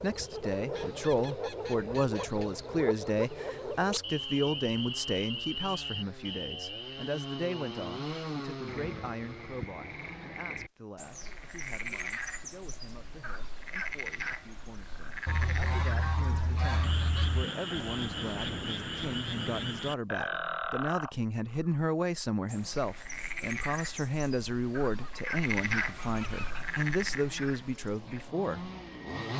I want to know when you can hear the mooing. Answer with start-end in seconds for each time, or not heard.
not heard.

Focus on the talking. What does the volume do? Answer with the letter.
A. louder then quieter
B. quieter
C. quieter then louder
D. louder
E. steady
C.